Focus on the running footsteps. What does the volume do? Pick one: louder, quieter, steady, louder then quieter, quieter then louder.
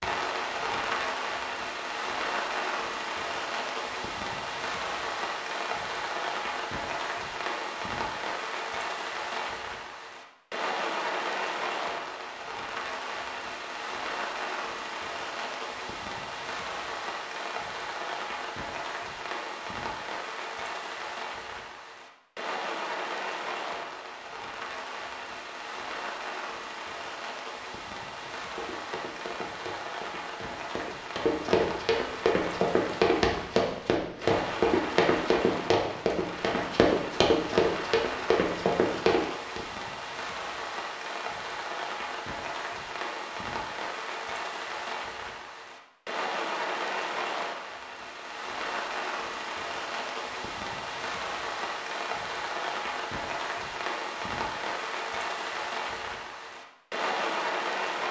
louder.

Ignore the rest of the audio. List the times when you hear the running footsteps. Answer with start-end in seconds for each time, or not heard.
28.2-39.6.